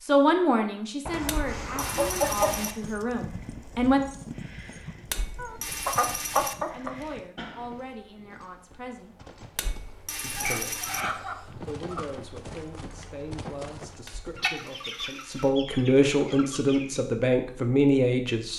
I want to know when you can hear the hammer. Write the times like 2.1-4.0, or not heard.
1.2-2.8, 5.0-6.5, 9.6-11.1, 14.1-15.5.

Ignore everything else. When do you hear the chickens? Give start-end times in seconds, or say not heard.
1.1-2.7, 5.3-7.2, 10.3-12.1, 14.3-16.9.